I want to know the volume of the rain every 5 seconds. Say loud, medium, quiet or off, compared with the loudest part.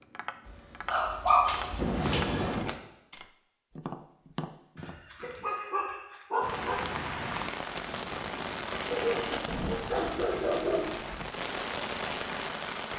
off, loud, loud.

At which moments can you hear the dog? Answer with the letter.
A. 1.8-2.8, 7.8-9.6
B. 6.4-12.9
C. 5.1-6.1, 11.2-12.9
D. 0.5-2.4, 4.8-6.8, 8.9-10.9
D.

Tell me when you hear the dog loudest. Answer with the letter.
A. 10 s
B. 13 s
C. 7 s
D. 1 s
D.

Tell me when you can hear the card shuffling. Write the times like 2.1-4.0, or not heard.
1.8-2.8, 7.8-9.6.